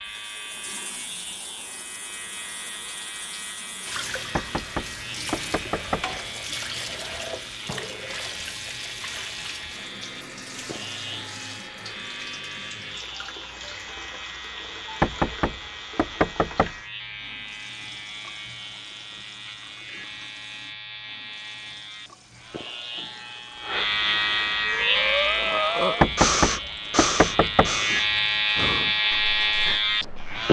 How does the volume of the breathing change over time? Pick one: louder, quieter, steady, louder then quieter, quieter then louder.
quieter.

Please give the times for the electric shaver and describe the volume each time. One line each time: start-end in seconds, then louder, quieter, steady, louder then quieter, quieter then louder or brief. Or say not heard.
0.0-30.4 louder.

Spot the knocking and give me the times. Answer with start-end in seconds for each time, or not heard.
4.3-6.0, 15.0-16.8, 26.0-27.7.